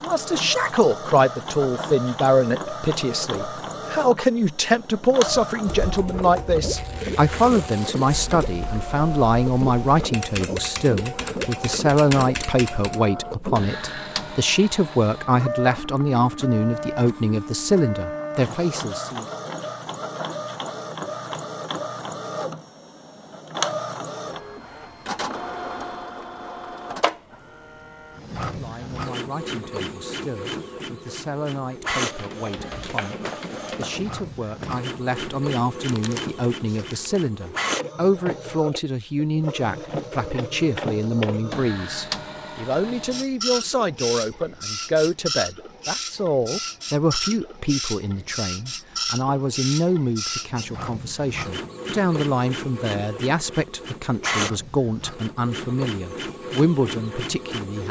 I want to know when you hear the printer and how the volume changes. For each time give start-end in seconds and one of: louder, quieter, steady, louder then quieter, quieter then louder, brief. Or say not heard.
0.0-57.8 steady.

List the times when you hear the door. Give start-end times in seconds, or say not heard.
33.9-34.9.